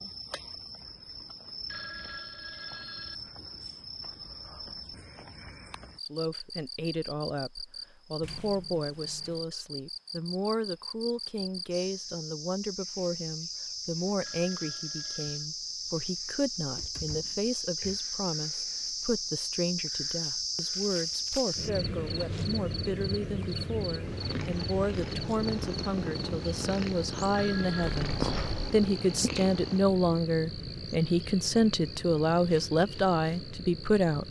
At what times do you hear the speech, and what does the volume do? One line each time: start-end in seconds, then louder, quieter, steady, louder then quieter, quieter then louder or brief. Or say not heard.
6.1-34.2 louder.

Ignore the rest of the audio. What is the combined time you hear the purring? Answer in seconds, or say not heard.
6 s.